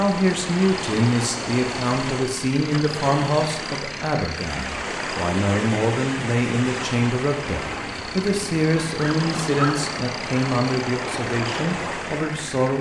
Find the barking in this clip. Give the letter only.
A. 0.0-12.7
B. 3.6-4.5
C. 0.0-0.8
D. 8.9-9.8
D.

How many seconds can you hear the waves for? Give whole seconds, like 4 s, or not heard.
13 s.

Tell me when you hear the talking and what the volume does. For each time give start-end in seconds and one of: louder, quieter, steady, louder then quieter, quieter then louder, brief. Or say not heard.
0.0-12.7 steady.